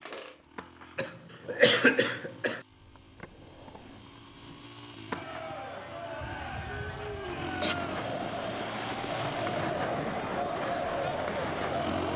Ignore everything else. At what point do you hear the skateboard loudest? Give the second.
10 s.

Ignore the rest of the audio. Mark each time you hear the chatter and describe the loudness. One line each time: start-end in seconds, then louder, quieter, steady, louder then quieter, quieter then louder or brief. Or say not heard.
5.0-12.1 louder.